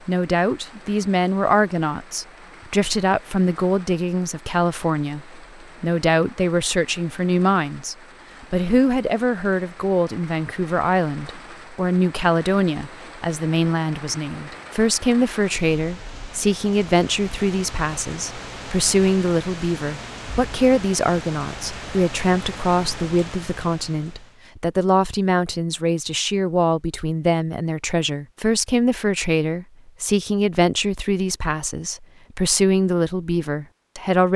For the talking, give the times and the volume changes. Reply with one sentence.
You can hear the talking from 0.1 to 34.3 s, at a steady volume.